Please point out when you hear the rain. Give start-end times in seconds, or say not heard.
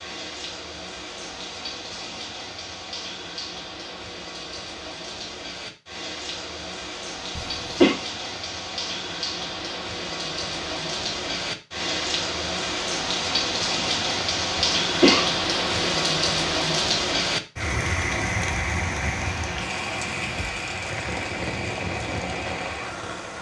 0.0-23.3.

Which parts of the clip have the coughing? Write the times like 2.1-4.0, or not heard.
7.3-8.0, 14.6-15.2.